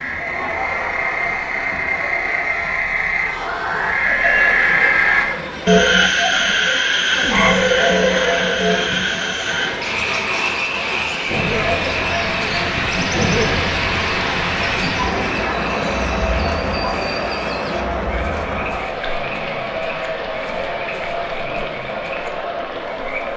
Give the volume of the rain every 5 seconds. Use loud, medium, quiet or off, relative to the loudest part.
quiet, medium, loud, loud, quiet.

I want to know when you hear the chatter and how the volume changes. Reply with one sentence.
You can hear the chatter from 0.0 to 23.3 s, at a steady volume.